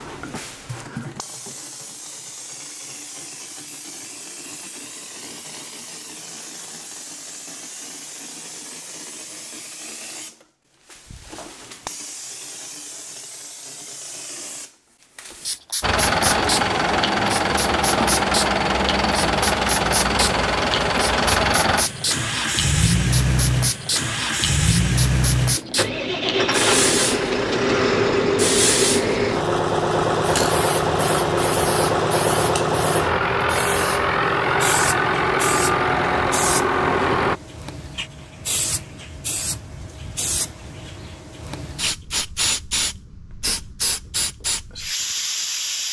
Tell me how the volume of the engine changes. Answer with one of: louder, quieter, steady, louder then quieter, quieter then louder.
steady.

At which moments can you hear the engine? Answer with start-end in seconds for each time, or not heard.
15.8-37.4.